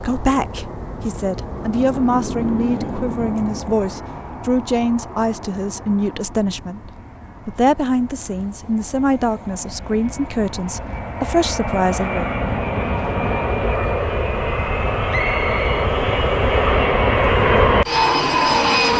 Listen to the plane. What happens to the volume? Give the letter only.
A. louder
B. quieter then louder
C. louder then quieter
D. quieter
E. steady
B.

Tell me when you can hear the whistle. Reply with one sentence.
The whistle can be heard from 15.1 to 15.9 s.